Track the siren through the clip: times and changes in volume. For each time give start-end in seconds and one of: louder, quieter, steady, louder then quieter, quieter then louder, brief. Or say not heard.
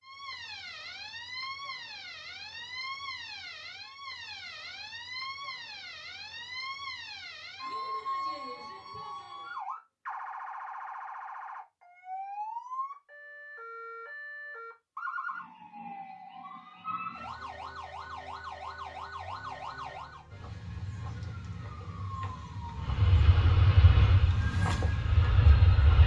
0.0-26.0 steady.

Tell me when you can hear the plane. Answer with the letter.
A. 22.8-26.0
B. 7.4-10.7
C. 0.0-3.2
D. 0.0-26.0
A.